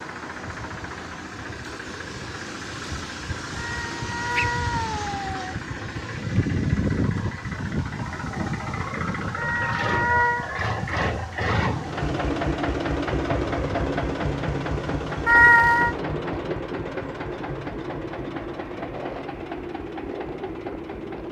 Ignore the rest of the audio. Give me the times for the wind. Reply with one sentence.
The wind can be heard from 0.0 to 21.2 s.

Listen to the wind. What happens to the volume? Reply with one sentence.
The loudness of the wind goes up, then down.